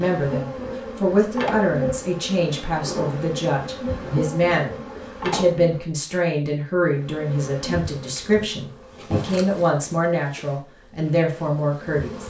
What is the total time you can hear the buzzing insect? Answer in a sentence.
The buzzing insect can be heard for 11 seconds in total.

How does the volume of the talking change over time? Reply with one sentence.
The volume of the talking stays about the same.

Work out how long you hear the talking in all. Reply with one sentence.
You can hear the talking for 12 seconds altogether.